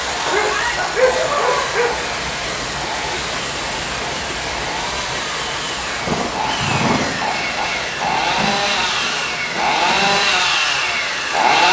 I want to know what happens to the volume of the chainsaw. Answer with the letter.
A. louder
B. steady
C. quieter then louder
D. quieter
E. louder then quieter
A.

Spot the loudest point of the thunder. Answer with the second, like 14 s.
7 s.